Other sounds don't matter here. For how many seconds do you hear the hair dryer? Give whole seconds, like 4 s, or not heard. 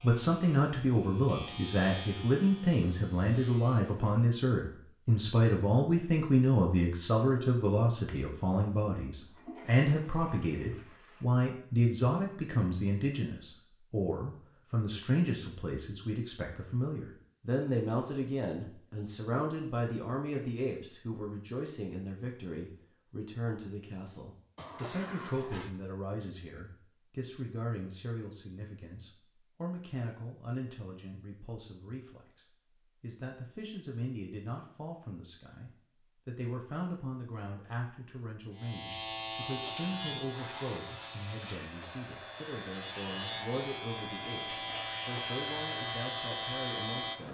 6 s.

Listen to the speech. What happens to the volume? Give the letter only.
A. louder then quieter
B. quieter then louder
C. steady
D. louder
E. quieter
E.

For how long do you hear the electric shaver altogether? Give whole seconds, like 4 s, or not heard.
13 s.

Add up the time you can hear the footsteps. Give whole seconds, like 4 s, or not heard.
not heard.